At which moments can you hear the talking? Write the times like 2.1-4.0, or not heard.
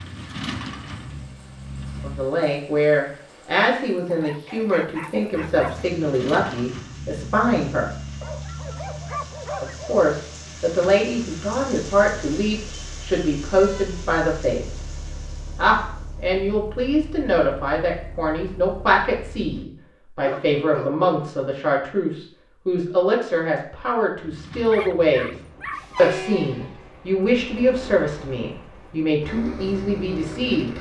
2.0-7.8, 9.6-14.8, 15.6-25.4, 25.9-30.7.